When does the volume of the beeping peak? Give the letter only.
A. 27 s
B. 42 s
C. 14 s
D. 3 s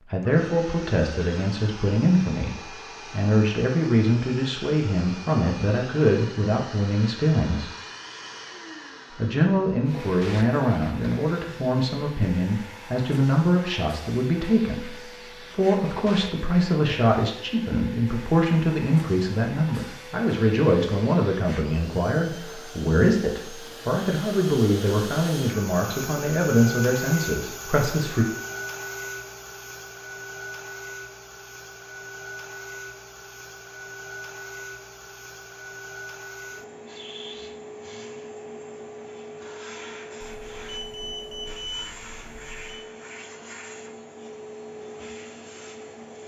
B.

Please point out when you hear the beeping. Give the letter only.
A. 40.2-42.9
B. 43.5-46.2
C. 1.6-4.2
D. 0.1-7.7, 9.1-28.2
A.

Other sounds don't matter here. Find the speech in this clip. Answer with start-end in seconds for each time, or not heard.
0.1-7.7, 9.1-28.2.